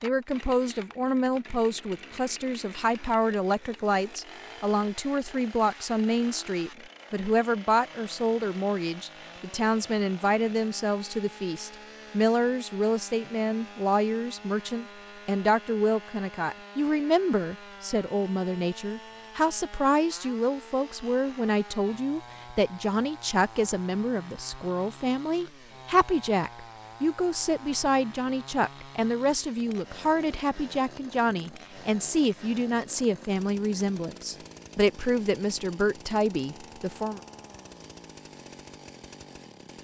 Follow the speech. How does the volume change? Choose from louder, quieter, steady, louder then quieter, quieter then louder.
steady.